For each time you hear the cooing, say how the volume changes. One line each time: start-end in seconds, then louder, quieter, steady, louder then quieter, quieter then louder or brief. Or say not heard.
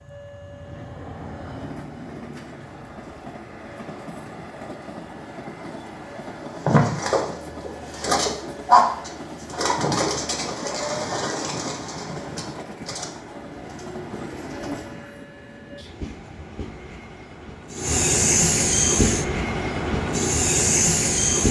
6.6-15.2 louder then quieter.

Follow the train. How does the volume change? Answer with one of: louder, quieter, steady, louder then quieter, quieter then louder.
louder.